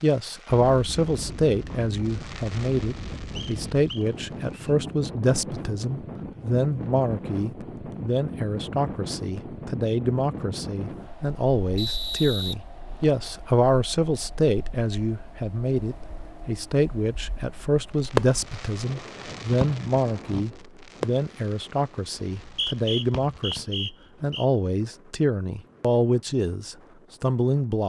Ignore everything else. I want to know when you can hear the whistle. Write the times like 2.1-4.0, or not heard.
3.4-4.7, 11.8-13.2, 22.2-24.4.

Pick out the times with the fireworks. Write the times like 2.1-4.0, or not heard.
0.0-4.7, 17.9-23.6.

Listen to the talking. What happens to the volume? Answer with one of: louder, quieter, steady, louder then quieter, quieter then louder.
steady.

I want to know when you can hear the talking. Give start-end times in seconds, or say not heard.
0.0-27.8.